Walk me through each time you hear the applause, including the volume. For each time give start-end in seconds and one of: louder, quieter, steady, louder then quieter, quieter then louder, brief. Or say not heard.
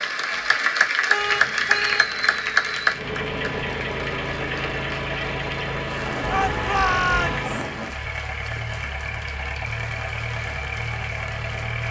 0.0-11.8 quieter.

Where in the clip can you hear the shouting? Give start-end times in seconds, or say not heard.
6.2-7.5.